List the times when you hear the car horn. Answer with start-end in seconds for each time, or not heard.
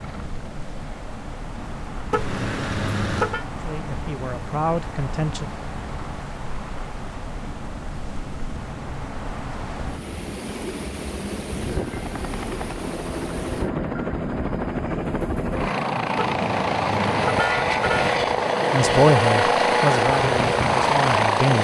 2.1-3.5, 16.1-18.1.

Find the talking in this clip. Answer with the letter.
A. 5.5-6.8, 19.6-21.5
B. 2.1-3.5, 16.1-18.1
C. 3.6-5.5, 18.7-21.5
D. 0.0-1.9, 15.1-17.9
C.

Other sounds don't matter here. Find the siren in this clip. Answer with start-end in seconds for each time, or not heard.
not heard.